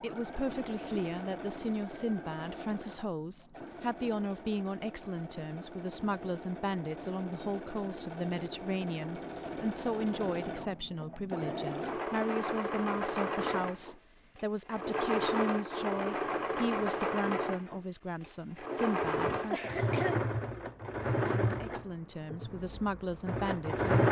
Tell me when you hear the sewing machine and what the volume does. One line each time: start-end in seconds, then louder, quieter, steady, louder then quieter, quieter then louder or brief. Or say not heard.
0.0-24.0 louder.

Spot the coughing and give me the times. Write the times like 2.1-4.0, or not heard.
19.0-20.1.